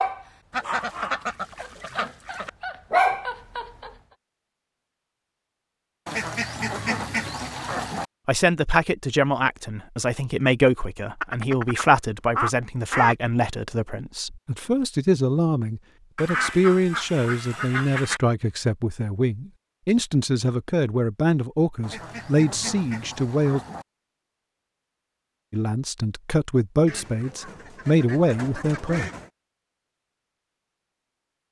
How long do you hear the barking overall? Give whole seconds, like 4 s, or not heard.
4 s.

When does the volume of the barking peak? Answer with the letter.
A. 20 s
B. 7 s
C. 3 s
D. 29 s
C.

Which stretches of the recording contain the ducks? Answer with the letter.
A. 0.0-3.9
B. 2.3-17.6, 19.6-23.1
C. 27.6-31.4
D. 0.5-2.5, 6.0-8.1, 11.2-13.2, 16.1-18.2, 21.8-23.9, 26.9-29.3
D.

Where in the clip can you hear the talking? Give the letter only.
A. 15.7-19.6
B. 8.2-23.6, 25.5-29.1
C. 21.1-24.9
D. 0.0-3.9
B.